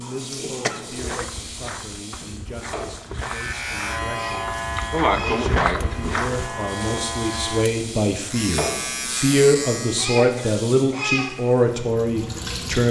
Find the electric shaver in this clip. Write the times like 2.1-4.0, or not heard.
3.2-10.2.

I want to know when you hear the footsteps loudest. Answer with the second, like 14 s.
6 s.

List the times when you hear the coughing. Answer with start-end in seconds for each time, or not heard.
0.6-1.3, 4.8-6.2, 10.3-11.1.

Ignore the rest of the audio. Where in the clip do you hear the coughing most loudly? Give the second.
5 s.